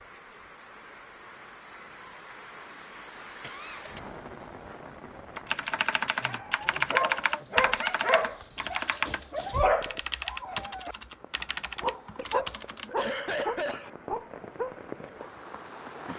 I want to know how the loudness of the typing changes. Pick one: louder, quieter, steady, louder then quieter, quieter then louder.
quieter.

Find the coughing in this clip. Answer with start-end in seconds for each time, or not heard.
3.4-4.0, 12.2-13.9.